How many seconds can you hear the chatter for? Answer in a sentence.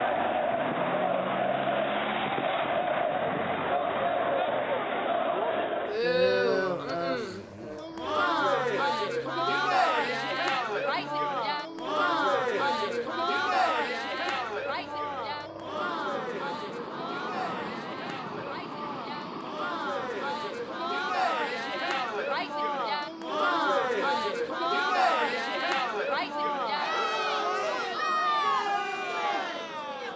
The chatter can be heard for 30 seconds in total.